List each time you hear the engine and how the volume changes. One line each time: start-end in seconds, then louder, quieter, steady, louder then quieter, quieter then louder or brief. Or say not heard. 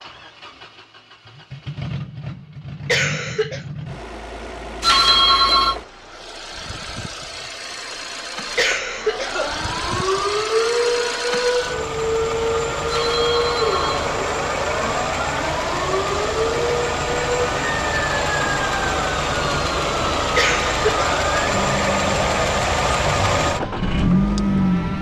0.0-24.9 louder.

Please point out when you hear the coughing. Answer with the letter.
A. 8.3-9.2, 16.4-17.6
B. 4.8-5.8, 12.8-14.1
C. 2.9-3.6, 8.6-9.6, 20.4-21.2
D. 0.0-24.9
C.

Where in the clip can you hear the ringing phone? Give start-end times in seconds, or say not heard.
4.8-5.8, 12.8-14.1.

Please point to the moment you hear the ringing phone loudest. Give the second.
5 s.